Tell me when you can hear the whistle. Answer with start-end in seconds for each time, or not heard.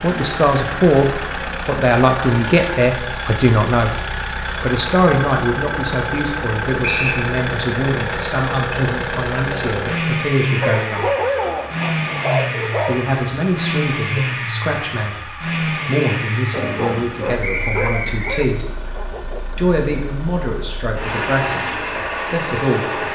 6.8-7.2, 17.4-18.4.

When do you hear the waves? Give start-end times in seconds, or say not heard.
not heard.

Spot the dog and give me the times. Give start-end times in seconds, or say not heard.
10.6-13.0, 16.5-19.6.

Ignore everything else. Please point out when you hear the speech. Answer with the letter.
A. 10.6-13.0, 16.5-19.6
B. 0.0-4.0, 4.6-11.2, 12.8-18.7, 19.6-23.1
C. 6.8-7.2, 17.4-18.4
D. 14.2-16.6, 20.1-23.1
B.